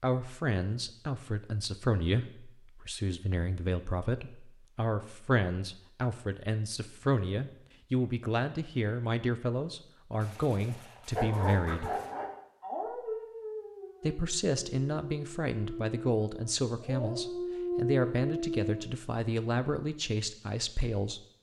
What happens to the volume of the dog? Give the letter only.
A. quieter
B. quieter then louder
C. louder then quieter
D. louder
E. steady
B.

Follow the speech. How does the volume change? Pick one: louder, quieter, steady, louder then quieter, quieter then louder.
steady.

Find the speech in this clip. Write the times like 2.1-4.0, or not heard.
0.0-11.9, 14.0-21.2.